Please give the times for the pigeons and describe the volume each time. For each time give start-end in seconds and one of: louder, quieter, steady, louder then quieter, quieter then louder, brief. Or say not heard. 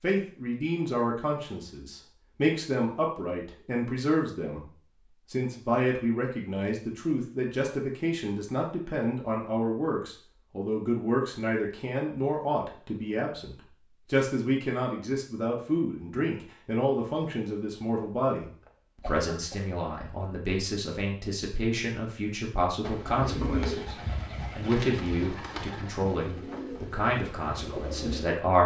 22.8-28.2 quieter.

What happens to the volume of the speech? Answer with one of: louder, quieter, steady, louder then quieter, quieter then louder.
steady.